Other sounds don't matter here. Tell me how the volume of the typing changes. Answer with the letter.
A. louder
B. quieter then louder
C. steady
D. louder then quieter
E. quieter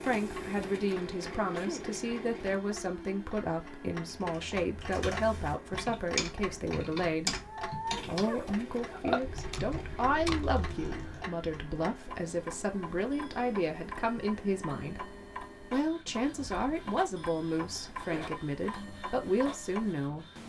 D.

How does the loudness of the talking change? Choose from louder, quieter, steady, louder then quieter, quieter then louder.
steady.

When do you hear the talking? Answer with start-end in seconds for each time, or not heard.
0.0-7.3, 8.0-15.1, 15.7-20.2.